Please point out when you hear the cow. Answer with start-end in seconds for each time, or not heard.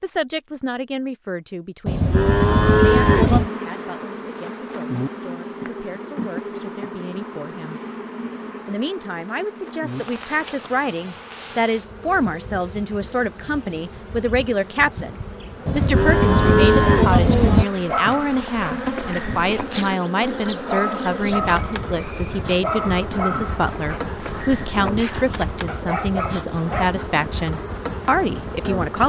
1.9-3.5, 15.7-17.6.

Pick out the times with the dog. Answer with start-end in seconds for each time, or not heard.
17.9-26.9.